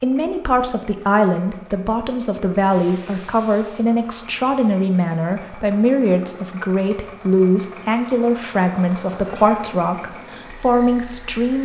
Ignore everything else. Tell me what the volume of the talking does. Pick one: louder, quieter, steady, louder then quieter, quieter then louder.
steady.